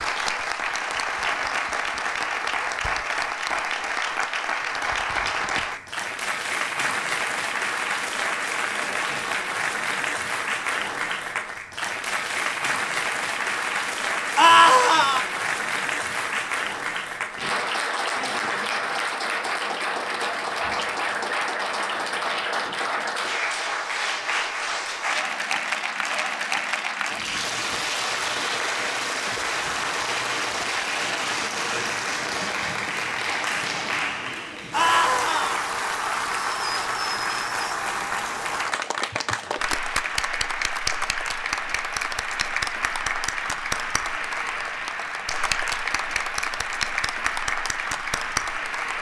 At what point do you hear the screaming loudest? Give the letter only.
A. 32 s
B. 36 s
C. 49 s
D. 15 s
D.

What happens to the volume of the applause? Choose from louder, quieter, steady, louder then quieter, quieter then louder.
steady.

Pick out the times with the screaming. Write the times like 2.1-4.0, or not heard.
14.3-15.2, 34.7-35.6.